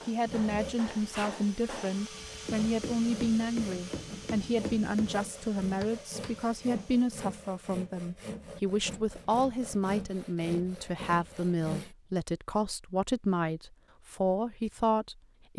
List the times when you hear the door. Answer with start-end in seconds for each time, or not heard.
not heard.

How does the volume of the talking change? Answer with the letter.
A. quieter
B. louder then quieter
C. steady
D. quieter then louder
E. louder
C.